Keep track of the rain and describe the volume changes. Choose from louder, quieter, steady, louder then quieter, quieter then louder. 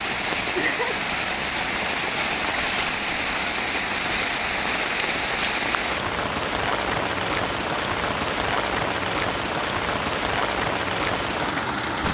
steady.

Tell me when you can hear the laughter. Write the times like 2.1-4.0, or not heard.
0.1-1.0.